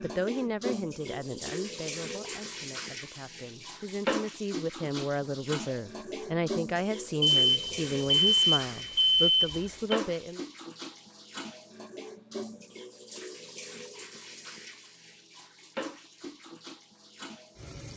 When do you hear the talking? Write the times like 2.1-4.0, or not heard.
0.0-10.4.